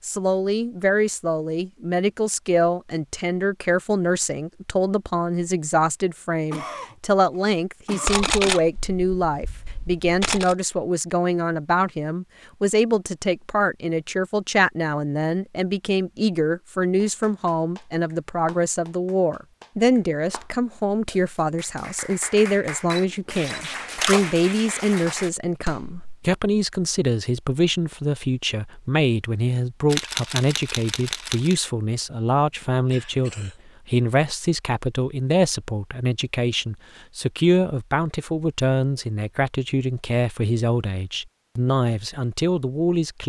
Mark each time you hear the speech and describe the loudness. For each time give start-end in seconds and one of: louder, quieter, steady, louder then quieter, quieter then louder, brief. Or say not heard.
0.0-43.2 steady.